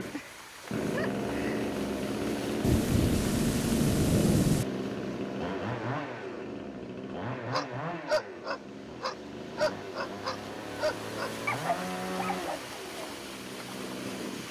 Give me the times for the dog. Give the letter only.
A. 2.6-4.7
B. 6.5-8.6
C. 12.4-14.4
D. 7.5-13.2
D.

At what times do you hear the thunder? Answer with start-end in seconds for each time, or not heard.
2.6-4.7.